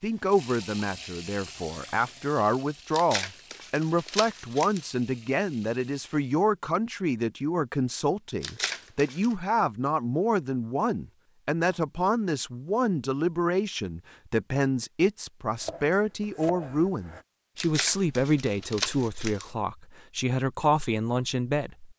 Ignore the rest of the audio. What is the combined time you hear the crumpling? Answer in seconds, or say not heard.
5 s.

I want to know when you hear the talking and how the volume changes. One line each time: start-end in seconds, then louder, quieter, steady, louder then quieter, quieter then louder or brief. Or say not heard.
0.0-21.9 steady.